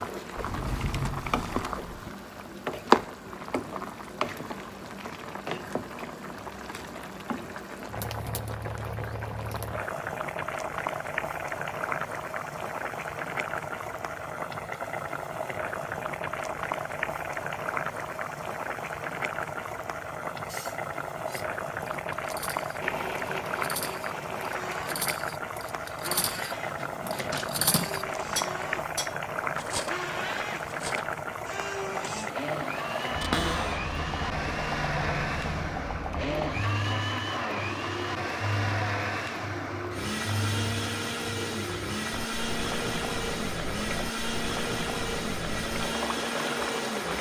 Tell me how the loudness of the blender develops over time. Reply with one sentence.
The volume of the blender goes up.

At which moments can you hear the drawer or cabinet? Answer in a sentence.
You can hear the drawer or cabinet from 0.3 to 2.1 s, from 26.8 to 27.9 s and from 33.2 to 33.8 s.